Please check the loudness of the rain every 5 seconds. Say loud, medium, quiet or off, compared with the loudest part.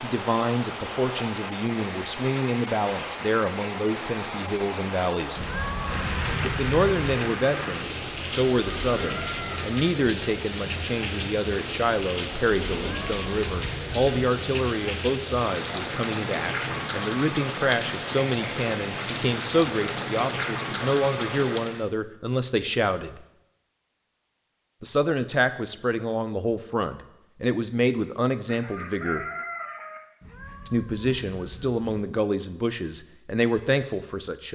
loud, loud, loud, loud, loud, off, off.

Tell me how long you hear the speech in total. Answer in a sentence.
You can hear the speech for 31 seconds altogether.